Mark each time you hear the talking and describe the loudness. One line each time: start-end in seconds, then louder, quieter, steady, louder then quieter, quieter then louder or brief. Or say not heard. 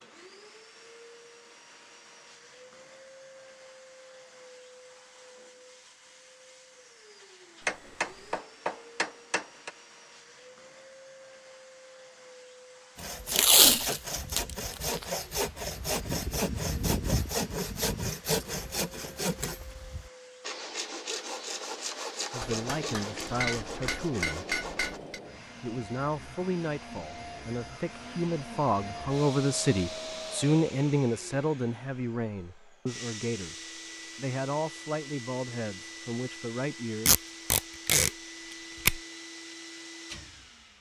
22.3-24.4 brief
25.6-37.1 louder then quieter.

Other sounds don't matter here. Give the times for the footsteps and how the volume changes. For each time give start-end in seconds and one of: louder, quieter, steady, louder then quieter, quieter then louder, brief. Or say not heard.
not heard.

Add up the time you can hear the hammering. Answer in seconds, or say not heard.
5 s.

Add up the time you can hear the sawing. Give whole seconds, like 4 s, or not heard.
12 s.